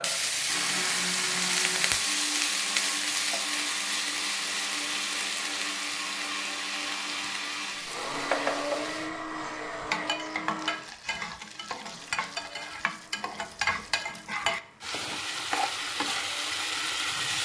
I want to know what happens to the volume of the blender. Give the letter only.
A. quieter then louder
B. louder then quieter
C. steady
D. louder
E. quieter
E.